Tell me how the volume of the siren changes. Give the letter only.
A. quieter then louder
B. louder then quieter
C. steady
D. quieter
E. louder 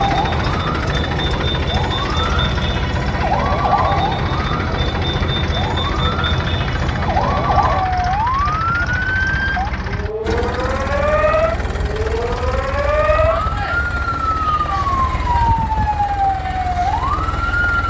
C.